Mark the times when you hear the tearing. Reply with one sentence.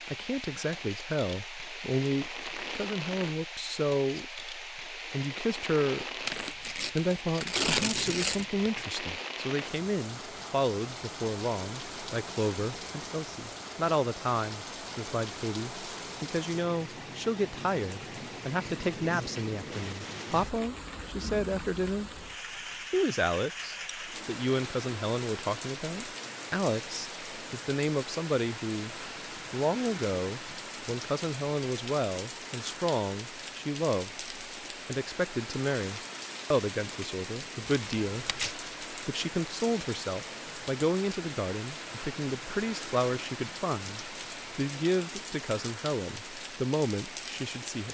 The tearing can be heard from 6.2 to 8.9 s and from 37.7 to 38.5 s.